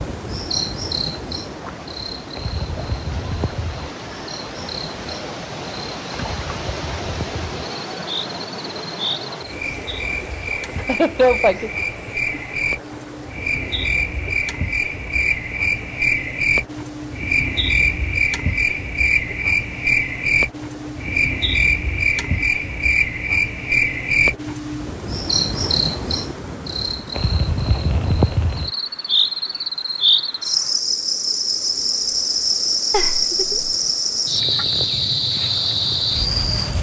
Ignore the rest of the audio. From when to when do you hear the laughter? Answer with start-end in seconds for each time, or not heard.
10.8-11.7, 32.9-33.6.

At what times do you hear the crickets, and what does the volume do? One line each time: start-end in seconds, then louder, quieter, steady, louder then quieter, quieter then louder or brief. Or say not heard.
0.0-36.7 louder.